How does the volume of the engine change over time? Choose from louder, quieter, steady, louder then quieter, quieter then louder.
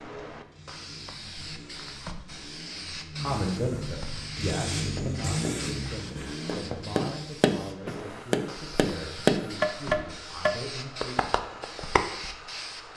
louder then quieter.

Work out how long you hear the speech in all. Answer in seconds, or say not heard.
8 s.